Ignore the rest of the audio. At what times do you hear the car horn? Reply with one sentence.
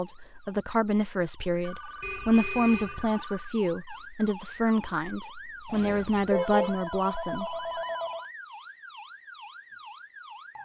The car horn can be heard from 2.0 to 3.1 s and from 5.7 to 6.8 s.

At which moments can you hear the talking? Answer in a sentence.
The talking can be heard from 0.0 to 7.8 s.